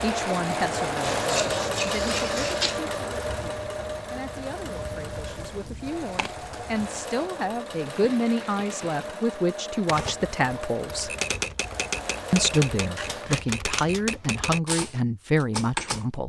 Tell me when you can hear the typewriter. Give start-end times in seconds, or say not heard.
9.8-16.1.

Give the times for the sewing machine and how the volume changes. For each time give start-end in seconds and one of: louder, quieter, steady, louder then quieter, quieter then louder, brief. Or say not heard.
0.0-13.4 quieter.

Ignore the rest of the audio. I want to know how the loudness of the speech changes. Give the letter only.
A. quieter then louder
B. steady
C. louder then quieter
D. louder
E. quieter
D.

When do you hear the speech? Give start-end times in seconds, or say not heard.
0.0-11.1, 12.3-16.2.